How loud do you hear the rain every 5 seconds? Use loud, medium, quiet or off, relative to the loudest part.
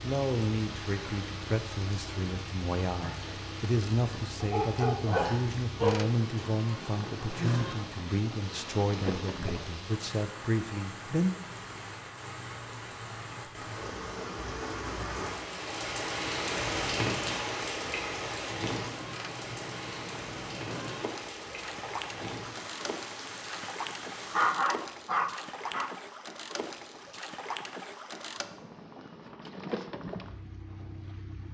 medium, medium, medium, loud, medium, off, off.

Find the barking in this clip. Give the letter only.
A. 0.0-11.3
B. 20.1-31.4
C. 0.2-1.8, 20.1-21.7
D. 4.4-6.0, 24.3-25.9
D.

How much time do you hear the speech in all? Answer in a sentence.
The speech can be heard for 11 seconds in total.